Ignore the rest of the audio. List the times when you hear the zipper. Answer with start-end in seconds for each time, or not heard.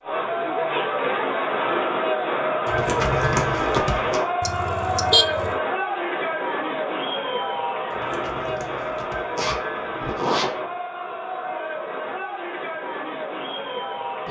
2.6-4.2, 7.9-10.5.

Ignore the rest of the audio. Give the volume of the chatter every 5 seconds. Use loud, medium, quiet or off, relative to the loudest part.
loud, loud, medium.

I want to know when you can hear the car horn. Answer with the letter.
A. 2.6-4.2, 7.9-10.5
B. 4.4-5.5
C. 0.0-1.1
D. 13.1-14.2
B.